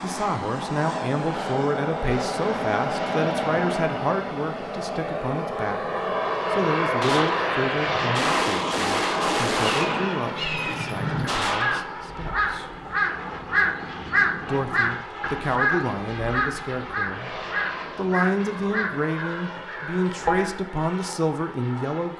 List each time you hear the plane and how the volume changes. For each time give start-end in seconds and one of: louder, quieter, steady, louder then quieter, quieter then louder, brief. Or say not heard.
0.0-22.1 quieter.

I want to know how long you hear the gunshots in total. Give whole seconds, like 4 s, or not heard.
5 s.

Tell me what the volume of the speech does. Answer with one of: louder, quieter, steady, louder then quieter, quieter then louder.
quieter then louder.